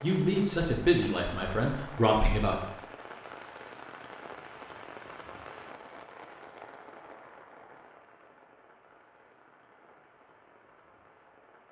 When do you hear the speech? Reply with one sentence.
The speech can be heard from 0.0 to 2.6 s.